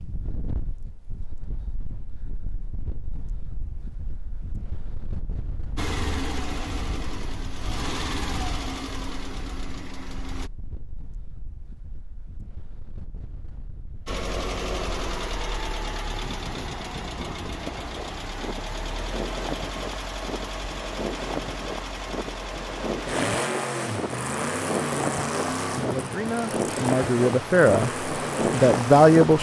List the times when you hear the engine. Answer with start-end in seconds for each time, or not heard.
5.8-10.5, 14.1-29.3.